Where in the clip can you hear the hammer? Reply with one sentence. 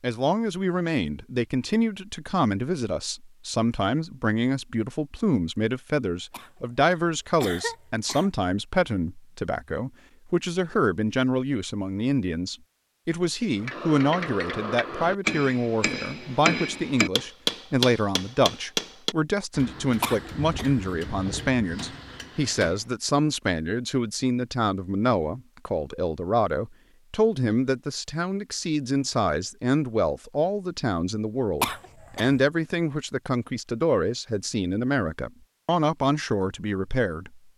You can hear the hammer from 13.6 to 22.9 s.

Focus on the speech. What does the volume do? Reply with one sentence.
The loudness of the speech stays about the same.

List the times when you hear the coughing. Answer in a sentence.
The coughing can be heard from 6.3 to 8.3 s, from 20.0 to 20.8 s and from 31.6 to 32.4 s.